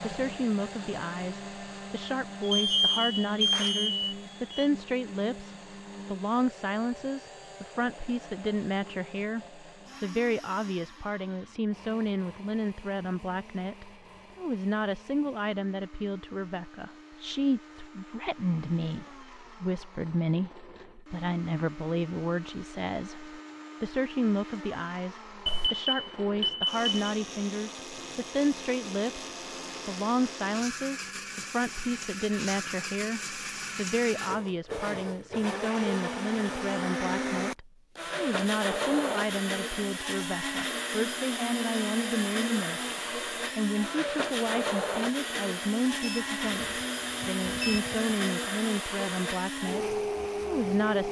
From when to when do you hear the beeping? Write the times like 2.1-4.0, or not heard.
2.4-4.7, 25.4-26.9, 46.0-48.1.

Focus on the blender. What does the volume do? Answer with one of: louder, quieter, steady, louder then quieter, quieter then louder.
quieter then louder.